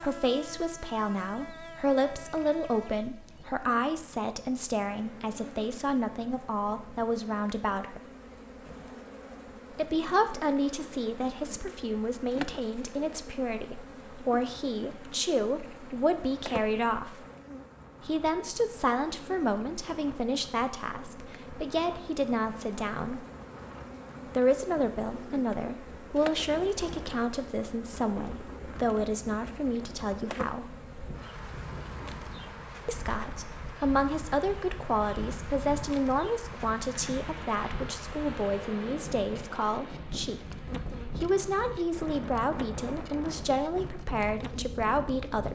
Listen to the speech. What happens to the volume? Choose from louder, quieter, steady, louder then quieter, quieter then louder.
steady.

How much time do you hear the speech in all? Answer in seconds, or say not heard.
40 s.